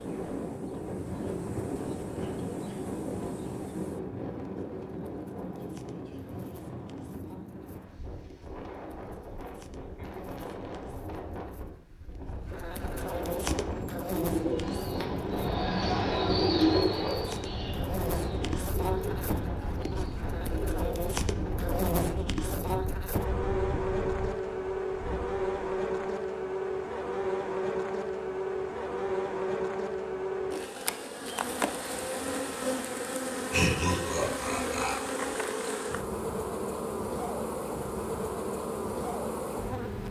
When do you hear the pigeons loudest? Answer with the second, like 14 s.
17 s.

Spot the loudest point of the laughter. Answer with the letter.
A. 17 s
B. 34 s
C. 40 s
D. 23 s
B.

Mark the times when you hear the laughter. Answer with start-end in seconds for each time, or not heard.
33.5-35.0.